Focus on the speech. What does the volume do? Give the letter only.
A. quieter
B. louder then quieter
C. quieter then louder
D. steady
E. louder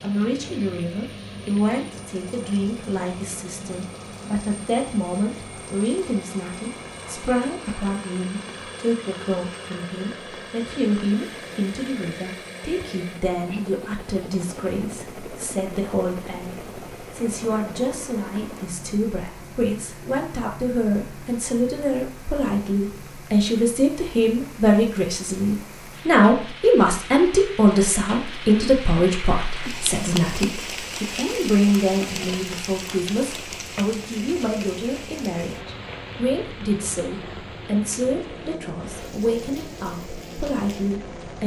B.